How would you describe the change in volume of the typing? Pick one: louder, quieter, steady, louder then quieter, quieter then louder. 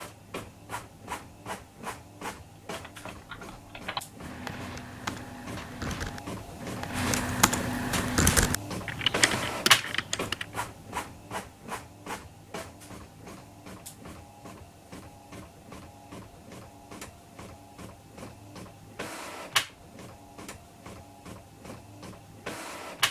louder.